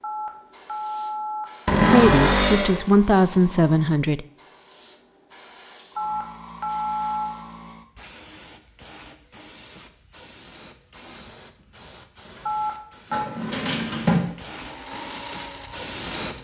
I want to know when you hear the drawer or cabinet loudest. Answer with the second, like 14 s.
2 s.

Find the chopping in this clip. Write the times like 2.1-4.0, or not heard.
not heard.